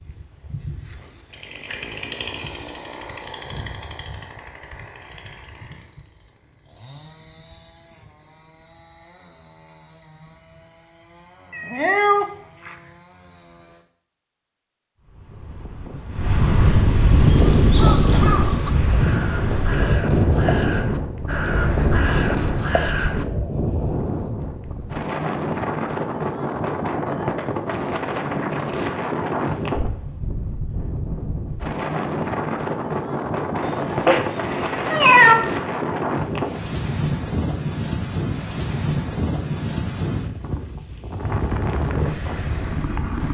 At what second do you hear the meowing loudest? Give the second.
35 s.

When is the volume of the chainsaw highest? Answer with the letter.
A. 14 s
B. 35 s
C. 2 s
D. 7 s
C.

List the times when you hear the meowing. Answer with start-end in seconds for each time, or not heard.
11.5-12.8, 33.6-35.4.